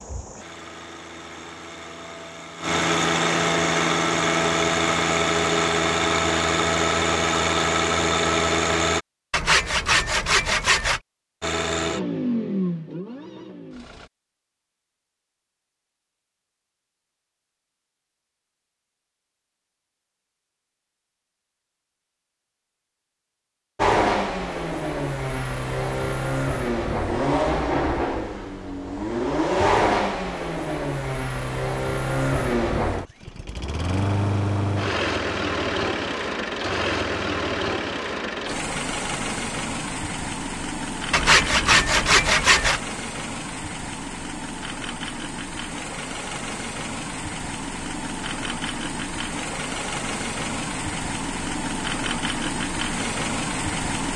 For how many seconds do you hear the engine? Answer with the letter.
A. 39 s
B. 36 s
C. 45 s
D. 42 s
D.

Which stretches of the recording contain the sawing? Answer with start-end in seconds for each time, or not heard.
9.3-11.0, 41.1-42.8.